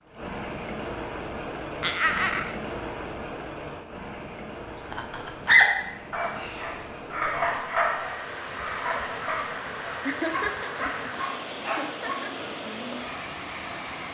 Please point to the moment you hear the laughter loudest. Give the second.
2 s.